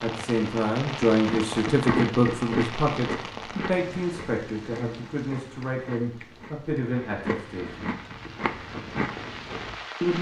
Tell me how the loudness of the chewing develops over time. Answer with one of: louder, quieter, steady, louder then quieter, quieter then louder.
quieter then louder.